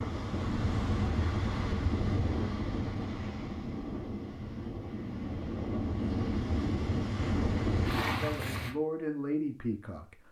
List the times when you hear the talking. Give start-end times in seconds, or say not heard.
8.2-10.1.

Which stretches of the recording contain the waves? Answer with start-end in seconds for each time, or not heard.
0.0-8.8.